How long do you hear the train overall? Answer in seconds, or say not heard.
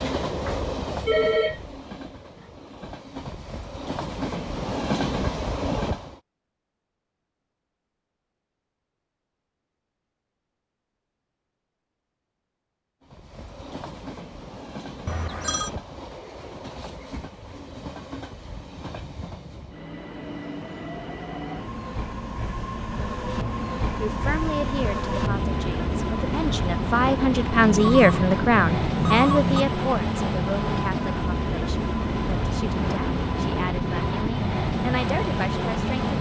29 s.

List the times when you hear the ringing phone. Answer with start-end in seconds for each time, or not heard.
0.3-1.8, 15.1-15.7, 27.6-29.6.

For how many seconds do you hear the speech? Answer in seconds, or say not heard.
12 s.